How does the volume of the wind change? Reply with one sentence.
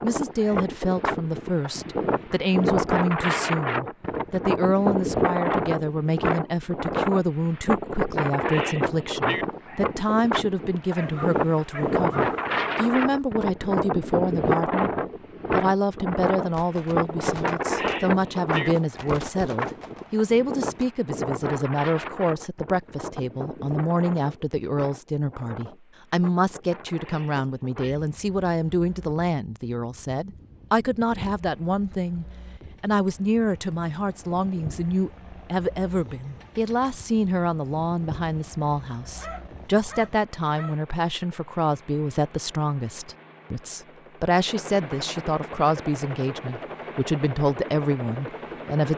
The loudness of the wind goes down.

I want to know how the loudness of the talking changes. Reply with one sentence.
The volume of the talking stays about the same.